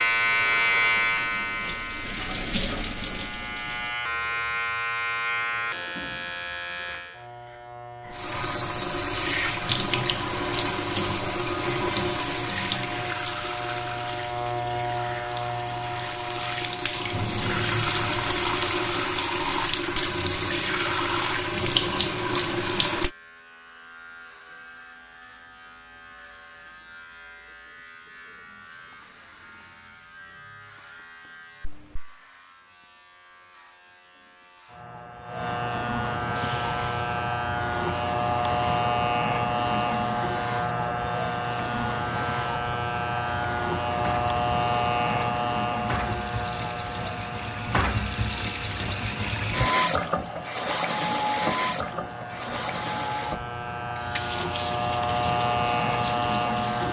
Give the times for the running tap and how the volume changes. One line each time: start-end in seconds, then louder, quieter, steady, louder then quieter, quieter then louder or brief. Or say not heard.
0.0-4.0 louder then quieter
8.1-23.1 quieter then louder
36.3-56.8 louder then quieter.